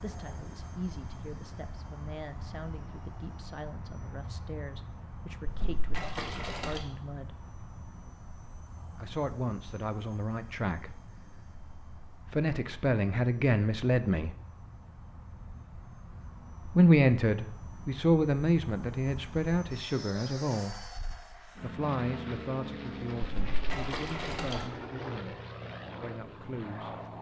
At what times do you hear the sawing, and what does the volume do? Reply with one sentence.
The sawing can't be heard in this clip.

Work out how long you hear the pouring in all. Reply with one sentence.
You can hear the pouring for 3 seconds altogether.